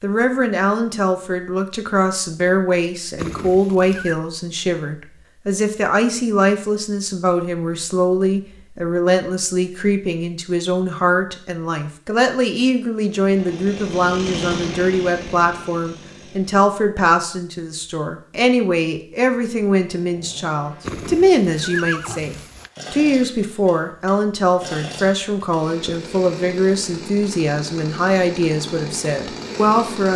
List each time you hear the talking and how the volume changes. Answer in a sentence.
The talking can be heard from 0.0 to 30.1 s, at a steady volume.